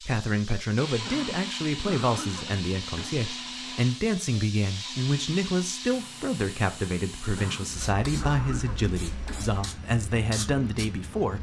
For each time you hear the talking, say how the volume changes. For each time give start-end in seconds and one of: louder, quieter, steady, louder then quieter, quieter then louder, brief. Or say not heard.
0.0-11.3 steady.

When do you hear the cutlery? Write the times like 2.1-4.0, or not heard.
not heard.